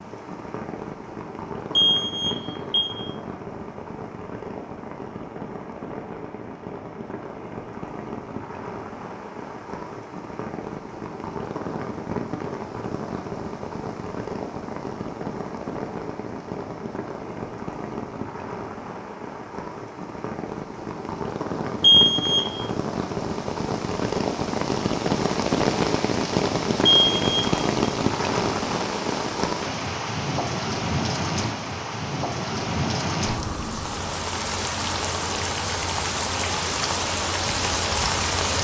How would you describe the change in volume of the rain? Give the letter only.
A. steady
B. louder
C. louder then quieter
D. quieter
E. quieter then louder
B.